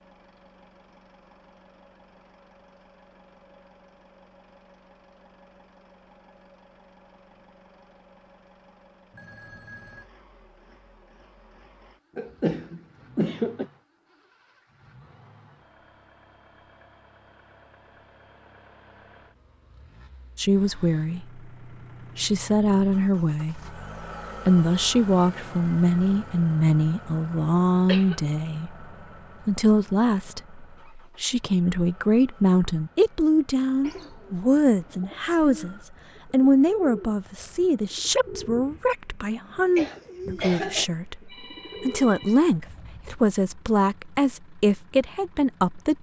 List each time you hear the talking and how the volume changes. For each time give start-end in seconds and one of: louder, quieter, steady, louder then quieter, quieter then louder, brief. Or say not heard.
20.4-21.4 brief
22.1-23.8 brief
24.4-28.9 steady
29.4-45.9 steady.